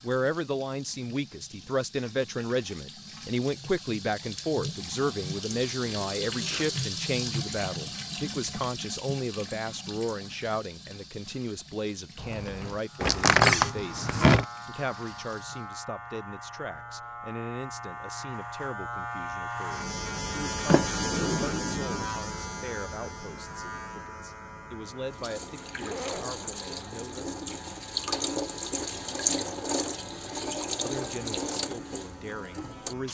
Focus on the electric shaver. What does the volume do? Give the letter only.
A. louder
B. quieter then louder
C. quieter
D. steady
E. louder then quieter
E.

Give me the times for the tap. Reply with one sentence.
The tap can be heard from 0.0 to 15.7 s and from 25.1 to 33.0 s.